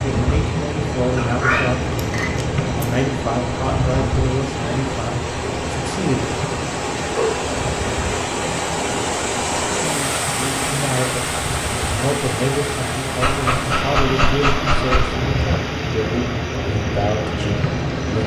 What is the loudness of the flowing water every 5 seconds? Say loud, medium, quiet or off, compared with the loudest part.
medium, loud, loud, medium.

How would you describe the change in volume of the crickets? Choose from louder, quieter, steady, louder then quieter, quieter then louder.
quieter then louder.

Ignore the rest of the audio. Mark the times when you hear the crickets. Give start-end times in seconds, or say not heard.
0.0-18.2.